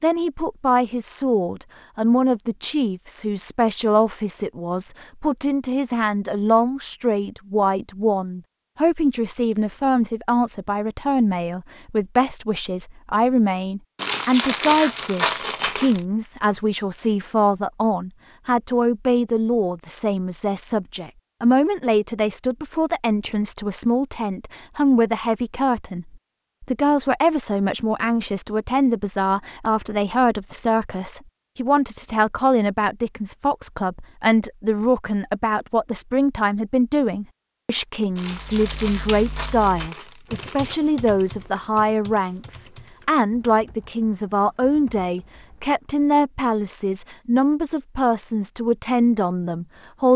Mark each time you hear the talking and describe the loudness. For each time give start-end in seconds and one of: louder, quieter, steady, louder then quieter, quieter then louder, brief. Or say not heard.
0.0-50.1 steady.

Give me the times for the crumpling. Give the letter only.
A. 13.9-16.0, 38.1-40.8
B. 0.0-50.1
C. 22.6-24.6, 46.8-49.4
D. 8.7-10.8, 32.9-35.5
A.